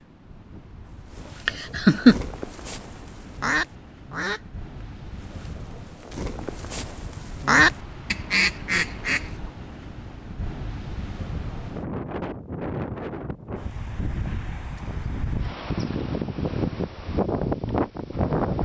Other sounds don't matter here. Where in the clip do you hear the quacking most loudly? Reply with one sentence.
The loudest moment of the quacking is at 8 seconds.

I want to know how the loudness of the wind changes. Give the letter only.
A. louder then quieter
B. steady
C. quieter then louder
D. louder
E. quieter
D.